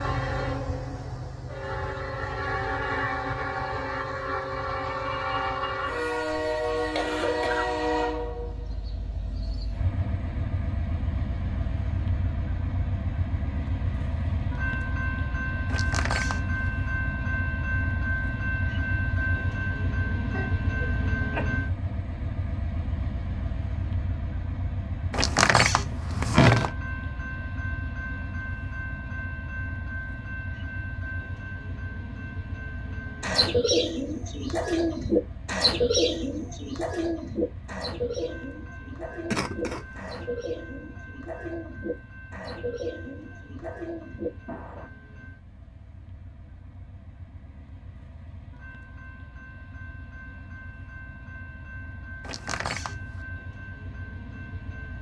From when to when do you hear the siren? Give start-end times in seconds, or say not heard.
not heard.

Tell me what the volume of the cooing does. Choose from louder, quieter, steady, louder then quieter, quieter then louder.
quieter.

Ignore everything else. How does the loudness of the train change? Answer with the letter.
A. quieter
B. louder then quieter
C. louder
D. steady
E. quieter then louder
A.